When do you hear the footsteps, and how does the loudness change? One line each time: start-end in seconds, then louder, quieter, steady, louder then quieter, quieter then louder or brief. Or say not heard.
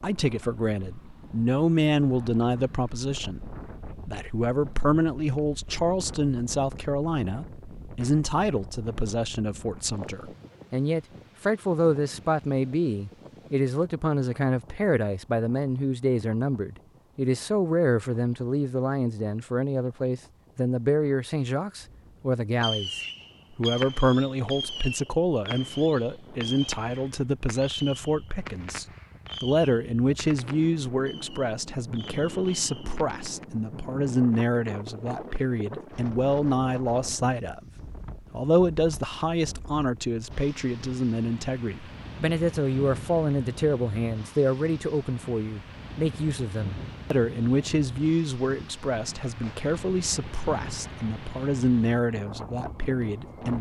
not heard.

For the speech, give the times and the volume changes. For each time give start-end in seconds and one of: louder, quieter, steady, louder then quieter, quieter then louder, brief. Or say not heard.
0.0-37.7 steady
38.3-53.5 steady.